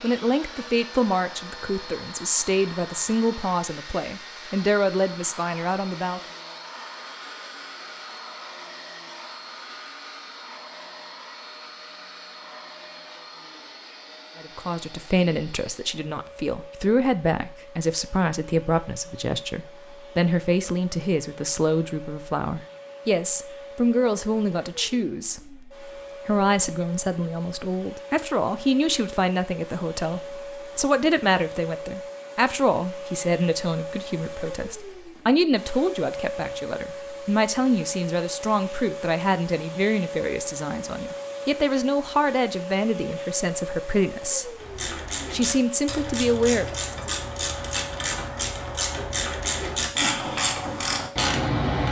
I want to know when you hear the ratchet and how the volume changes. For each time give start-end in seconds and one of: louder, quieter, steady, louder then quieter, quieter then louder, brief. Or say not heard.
44.5-51.8 louder.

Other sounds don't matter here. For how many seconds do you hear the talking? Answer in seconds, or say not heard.
38 s.